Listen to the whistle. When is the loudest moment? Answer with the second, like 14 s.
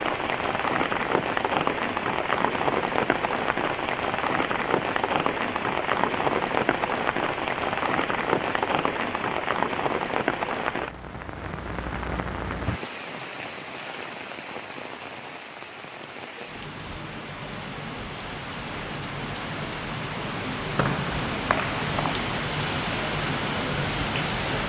21 s.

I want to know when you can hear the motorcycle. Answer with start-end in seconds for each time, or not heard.
not heard.